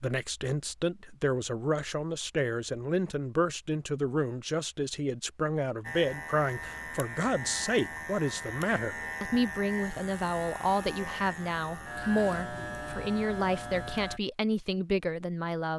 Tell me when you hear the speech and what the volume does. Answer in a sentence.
You can hear the speech from 0.0 to 15.7 s, at a steady volume.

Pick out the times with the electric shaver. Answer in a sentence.
You can hear the electric shaver from 5.8 to 14.2 s.